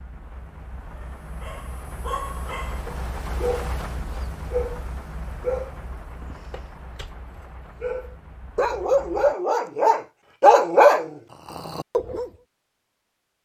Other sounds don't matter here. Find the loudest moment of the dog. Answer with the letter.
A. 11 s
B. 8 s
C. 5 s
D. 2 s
A.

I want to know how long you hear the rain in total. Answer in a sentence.
The rain can be heard for 9 seconds in total.